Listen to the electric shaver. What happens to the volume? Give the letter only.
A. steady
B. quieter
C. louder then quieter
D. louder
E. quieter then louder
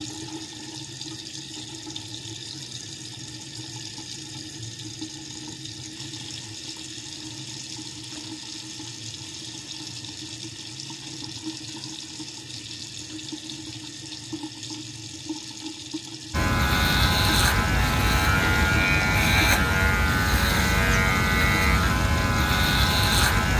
A.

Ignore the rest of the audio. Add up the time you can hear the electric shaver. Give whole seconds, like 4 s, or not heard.
7 s.